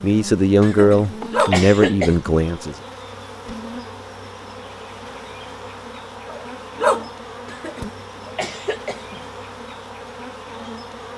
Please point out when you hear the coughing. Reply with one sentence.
You can hear the coughing from 0.6 to 2.4 s and from 7.5 to 9.2 s.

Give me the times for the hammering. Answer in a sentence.
The hammering can't be heard in this clip.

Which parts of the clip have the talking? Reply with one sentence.
The talking can be heard from 0.0 to 2.8 s.